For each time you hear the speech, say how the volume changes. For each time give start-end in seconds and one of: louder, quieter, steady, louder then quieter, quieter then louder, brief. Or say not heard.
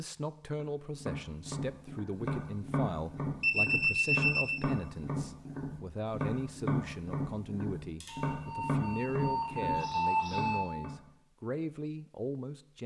0.0-12.8 steady.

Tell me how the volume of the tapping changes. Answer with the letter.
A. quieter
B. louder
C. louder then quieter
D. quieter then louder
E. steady
E.